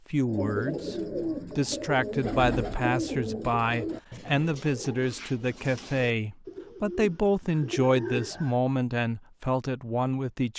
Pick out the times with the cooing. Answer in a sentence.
The cooing can be heard from 0.2 to 8.6 s.